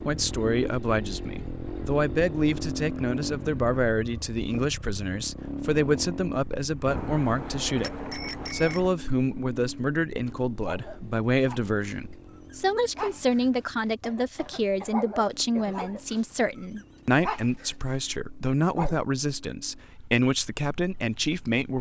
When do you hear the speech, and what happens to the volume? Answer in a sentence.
The speech can be heard from 0.0 to 21.7 s, at a steady volume.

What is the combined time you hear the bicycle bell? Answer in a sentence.
The bicycle bell can be heard for 2 seconds in total.